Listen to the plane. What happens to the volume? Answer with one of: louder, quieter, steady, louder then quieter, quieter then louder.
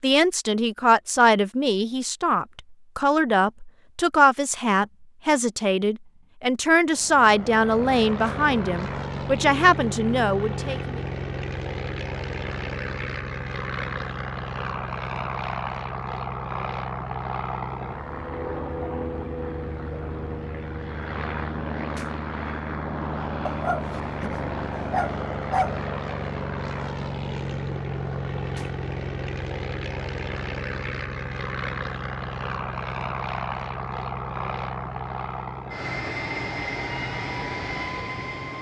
steady.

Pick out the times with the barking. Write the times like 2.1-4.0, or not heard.
23.4-25.8.